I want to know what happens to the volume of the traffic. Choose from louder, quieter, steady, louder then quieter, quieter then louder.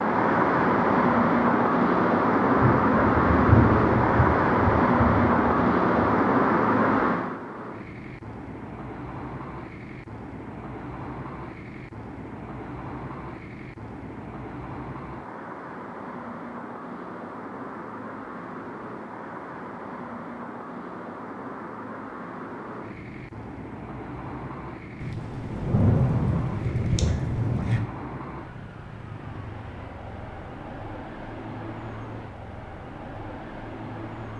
quieter.